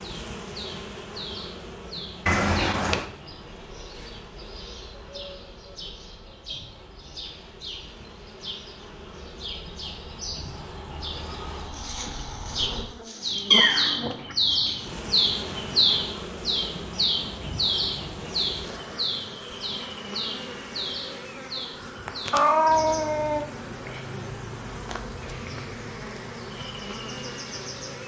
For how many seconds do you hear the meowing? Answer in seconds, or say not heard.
3 s.